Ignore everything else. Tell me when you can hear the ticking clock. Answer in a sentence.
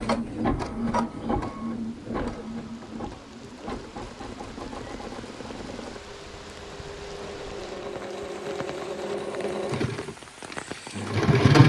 You can't hear the ticking clock here.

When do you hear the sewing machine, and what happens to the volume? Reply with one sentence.
You can hear the sewing machine from 0.0 to 11.6 s, getting quieter then louder.